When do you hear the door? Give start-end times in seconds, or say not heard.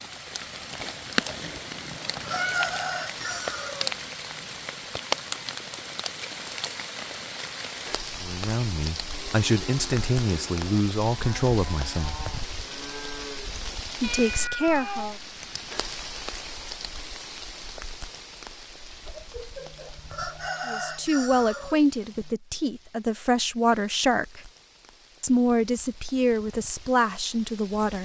not heard.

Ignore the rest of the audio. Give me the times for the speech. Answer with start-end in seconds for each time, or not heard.
8.2-12.2, 14.0-15.2, 20.6-24.4, 25.2-28.0.